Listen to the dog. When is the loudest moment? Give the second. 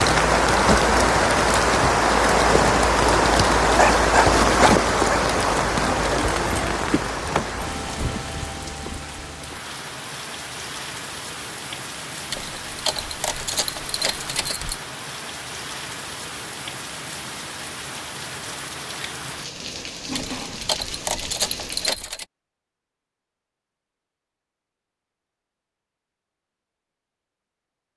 4 s.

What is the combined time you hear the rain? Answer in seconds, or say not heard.
22 s.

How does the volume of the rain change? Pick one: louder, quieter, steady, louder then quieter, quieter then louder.
quieter.